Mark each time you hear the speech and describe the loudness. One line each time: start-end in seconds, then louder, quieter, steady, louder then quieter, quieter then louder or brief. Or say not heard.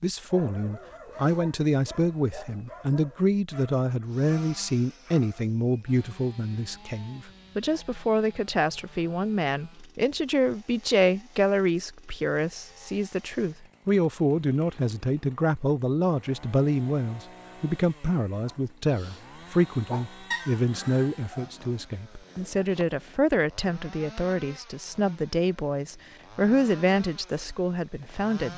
0.0-28.5 steady.